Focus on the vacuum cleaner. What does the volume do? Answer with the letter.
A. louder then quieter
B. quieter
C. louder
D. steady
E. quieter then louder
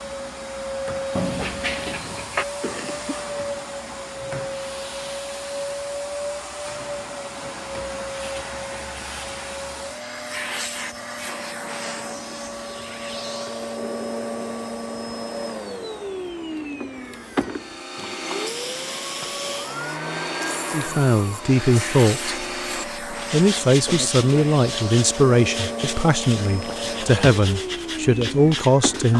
D.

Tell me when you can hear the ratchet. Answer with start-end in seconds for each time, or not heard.
not heard.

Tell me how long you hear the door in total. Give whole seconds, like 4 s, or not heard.
2 s.